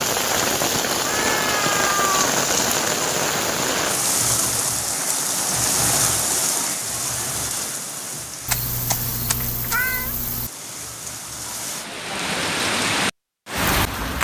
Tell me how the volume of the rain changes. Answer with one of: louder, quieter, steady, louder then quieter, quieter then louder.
quieter then louder.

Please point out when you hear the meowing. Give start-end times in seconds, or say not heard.
1.1-2.2, 8.4-10.5.